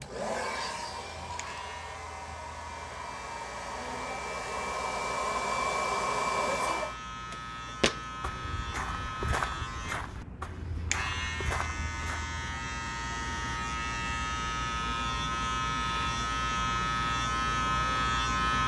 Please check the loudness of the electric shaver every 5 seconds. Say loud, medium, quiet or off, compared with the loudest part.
quiet, medium, medium, loud.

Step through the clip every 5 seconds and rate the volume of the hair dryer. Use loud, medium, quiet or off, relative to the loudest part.
medium, loud, off, off.